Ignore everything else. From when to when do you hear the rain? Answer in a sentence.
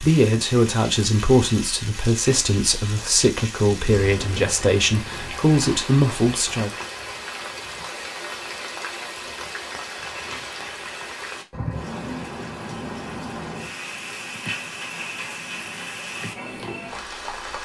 You can hear the rain from 0.0 to 17.6 s.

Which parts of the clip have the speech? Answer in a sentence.
The speech can be heard from 0.0 to 6.7 s.